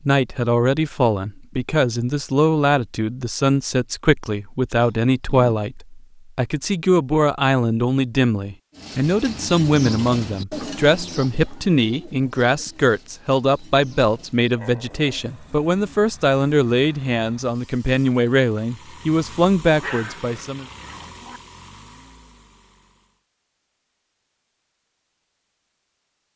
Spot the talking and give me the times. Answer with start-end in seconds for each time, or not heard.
0.1-20.6.